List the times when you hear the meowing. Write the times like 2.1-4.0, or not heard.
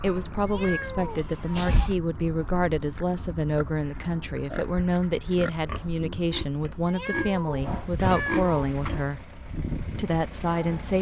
0.5-1.8, 6.8-8.5.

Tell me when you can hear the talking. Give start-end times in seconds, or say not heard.
0.0-9.2, 9.9-10.9.